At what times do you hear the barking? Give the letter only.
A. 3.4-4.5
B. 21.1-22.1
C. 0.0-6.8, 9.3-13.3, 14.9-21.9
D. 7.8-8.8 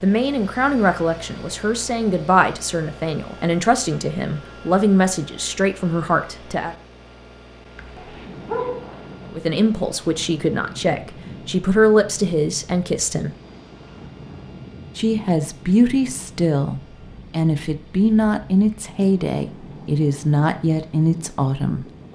D.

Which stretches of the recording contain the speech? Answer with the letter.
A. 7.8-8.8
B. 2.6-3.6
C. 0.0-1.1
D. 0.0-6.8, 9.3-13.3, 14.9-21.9
D.